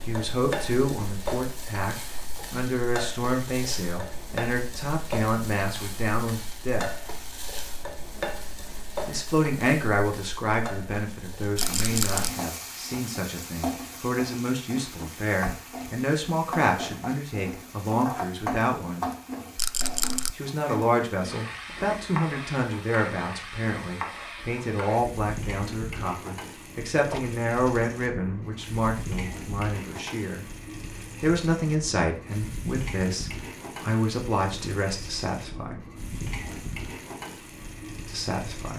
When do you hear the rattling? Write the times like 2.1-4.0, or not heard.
11.6-12.3, 19.6-20.4.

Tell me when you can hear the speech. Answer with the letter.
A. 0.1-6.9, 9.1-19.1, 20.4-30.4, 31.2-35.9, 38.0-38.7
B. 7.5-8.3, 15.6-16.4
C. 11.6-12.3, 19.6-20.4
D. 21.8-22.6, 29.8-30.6
A.